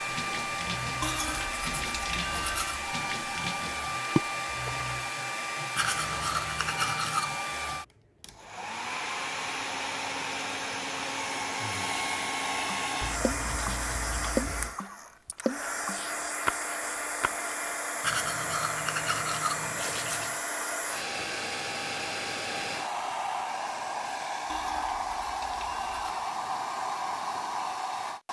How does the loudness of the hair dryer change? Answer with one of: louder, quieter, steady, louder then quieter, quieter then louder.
steady.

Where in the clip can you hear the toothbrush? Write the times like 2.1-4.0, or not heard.
1.0-2.8, 5.8-7.4, 13.0-14.8, 18.0-20.4, 24.4-26.2.